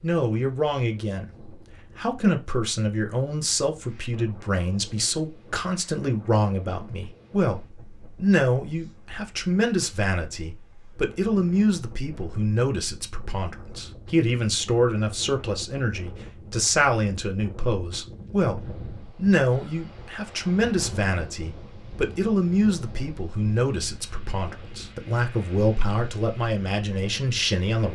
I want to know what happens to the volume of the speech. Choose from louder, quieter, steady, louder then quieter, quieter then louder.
steady.